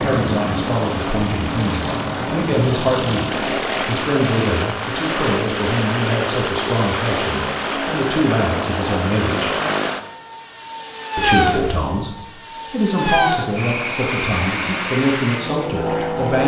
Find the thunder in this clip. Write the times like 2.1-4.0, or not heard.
not heard.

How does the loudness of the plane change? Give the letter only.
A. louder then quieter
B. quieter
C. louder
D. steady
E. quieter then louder
D.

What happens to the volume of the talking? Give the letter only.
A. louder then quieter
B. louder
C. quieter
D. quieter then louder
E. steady
E.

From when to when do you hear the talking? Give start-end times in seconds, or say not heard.
0.0-9.6, 11.2-16.4.